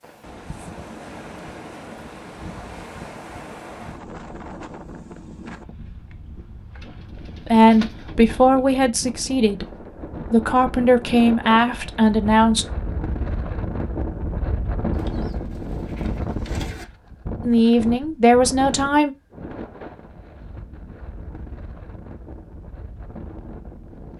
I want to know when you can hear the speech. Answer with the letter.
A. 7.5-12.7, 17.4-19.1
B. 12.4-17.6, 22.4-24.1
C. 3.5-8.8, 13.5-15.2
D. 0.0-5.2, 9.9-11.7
A.